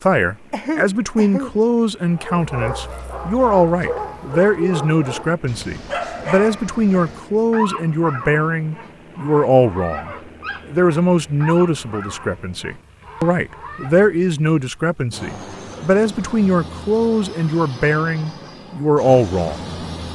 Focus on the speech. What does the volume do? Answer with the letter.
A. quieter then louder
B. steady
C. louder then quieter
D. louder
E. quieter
B.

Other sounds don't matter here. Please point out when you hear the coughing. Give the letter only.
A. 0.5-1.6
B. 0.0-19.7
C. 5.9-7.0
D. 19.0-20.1
A.